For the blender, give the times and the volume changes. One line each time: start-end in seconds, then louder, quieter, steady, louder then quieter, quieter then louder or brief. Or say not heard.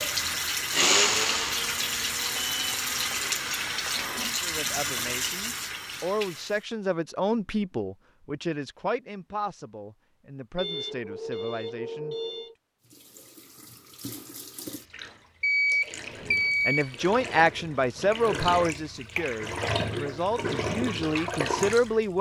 0.0-4.5 quieter.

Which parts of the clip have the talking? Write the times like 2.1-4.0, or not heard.
4.4-12.2, 16.2-22.1.